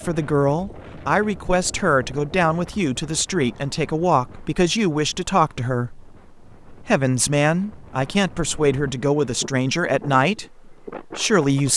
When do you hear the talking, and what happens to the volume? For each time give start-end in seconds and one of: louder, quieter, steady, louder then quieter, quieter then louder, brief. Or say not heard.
0.0-11.7 steady.